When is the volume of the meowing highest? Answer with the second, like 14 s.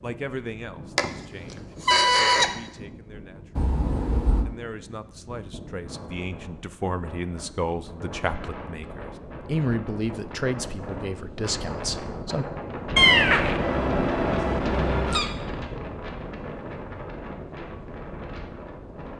13 s.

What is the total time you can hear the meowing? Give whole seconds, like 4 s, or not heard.
3 s.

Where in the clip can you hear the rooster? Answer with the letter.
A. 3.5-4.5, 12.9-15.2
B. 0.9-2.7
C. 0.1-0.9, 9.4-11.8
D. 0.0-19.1
B.